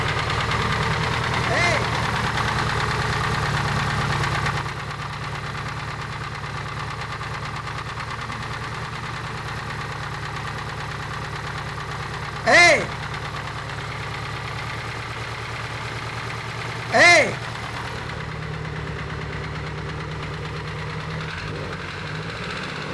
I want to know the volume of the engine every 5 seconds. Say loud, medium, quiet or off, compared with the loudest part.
loud, medium, medium, medium, medium.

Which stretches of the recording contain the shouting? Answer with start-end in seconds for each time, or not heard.
1.4-1.9, 12.4-12.9, 16.9-17.4.